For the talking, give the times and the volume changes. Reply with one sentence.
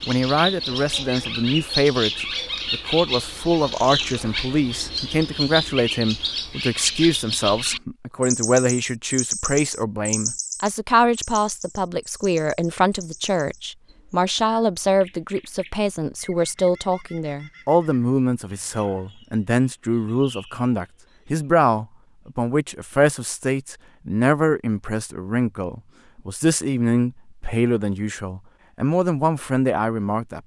The talking can be heard from 0.1 to 30.4 s, at a steady volume.